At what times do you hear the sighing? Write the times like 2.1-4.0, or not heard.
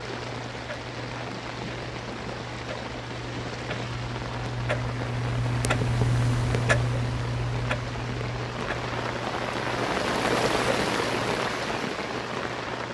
not heard.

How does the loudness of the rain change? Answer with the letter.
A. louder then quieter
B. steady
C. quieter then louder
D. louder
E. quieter
D.